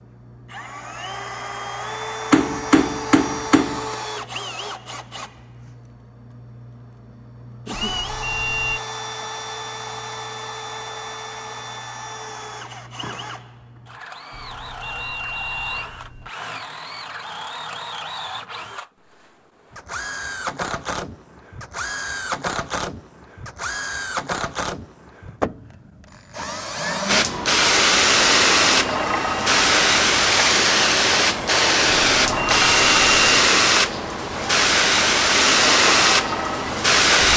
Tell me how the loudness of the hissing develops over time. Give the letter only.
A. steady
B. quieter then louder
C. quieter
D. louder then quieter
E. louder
A.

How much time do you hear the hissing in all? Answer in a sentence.
You can hear the hissing for 10 seconds altogether.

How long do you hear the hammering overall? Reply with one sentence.
The hammering can be heard for 2 seconds in total.